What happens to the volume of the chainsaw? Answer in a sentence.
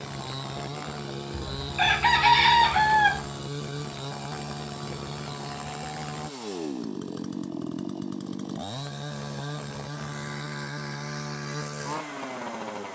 The volume of the chainsaw stays about the same.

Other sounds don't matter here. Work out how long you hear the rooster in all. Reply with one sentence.
The rooster can be heard for 2 seconds in total.